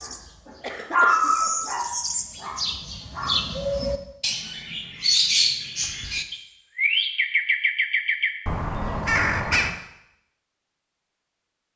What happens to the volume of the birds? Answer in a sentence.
The volume of the birds goes up.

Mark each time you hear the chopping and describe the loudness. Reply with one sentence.
The chopping can't be heard in this clip.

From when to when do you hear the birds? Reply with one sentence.
The birds can be heard from 0.0 to 9.8 s.